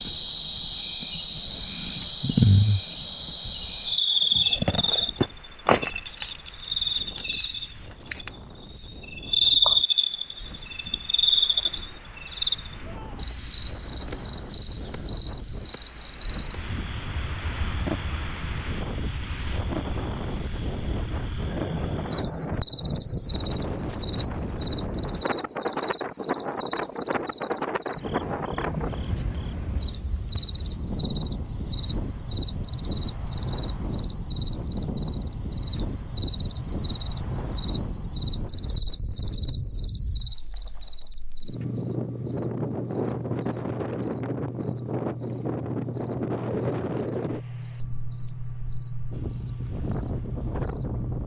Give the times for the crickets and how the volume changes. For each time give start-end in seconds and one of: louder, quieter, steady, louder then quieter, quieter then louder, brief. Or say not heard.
0.0-51.2 quieter.